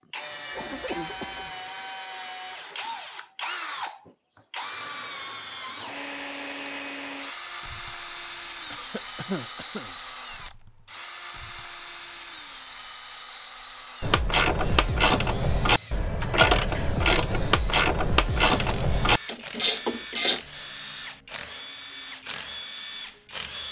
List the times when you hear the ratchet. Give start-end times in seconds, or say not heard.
14.0-20.4.